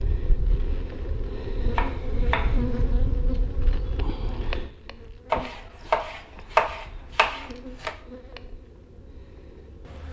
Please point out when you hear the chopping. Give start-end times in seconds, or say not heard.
1.8-2.6, 5.3-8.0.